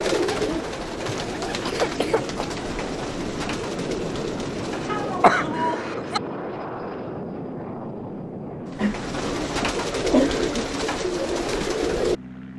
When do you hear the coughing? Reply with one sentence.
You can hear the coughing from 1.1 to 2.5 s, from 4.8 to 6.2 s and from 8.8 to 10.6 s.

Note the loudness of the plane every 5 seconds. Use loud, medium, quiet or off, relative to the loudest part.
loud, loud, medium.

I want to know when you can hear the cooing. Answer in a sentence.
You can hear the cooing from 0.0 to 5.3 s and from 8.7 to 12.5 s.